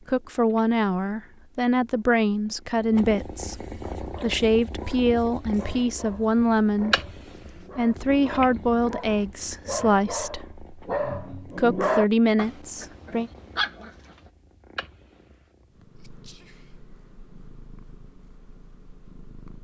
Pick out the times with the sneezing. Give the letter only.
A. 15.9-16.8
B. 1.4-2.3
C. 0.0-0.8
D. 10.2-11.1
A.